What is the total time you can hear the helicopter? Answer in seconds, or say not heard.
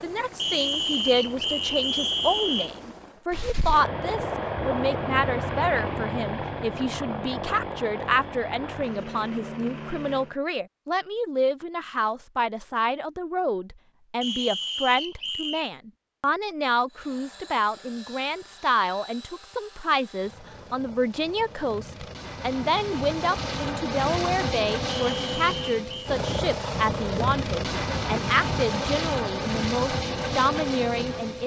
25 s.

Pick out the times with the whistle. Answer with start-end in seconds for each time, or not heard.
0.3-2.7, 14.2-15.7, 24.9-26.1.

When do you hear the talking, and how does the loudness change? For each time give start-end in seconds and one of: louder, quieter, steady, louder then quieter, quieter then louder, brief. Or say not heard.
0.0-31.4 steady.